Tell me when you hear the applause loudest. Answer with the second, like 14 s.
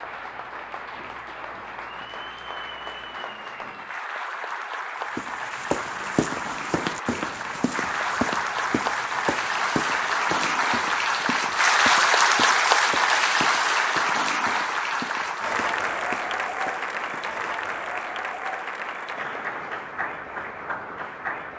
12 s.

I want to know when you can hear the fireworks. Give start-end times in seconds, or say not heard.
not heard.